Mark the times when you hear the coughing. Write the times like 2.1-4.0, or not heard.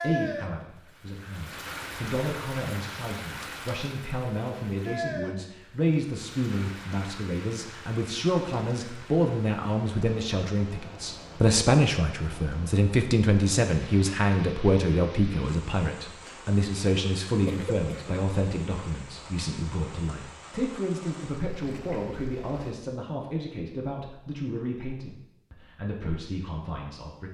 17.4-18.1.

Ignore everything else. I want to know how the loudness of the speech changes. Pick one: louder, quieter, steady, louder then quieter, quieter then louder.
louder then quieter.